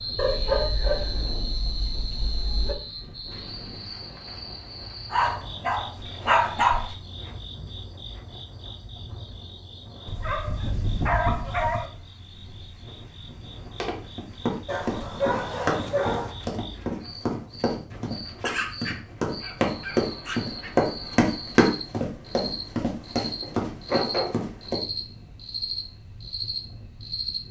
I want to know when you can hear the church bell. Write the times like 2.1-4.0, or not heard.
not heard.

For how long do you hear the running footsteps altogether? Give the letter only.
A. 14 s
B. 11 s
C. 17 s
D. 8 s
B.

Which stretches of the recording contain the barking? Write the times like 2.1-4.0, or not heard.
0.1-2.8, 5.1-7.0, 10.1-11.9, 14.7-16.4, 18.4-20.8, 23.4-24.7.